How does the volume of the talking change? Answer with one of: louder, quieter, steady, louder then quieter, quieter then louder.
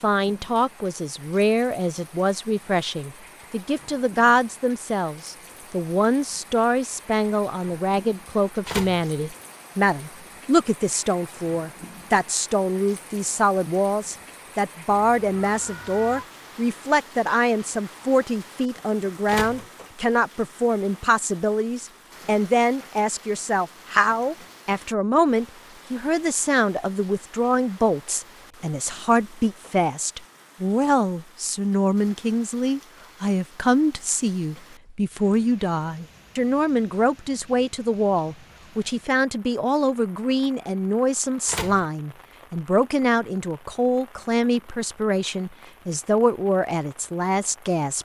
steady.